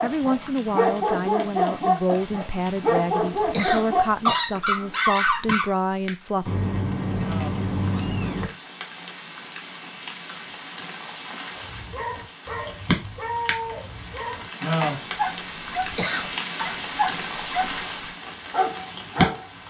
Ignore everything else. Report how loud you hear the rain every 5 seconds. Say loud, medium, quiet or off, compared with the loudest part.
quiet, medium, loud, loud.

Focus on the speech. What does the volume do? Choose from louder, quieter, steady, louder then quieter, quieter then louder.
steady.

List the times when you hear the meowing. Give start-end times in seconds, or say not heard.
6.5-8.4.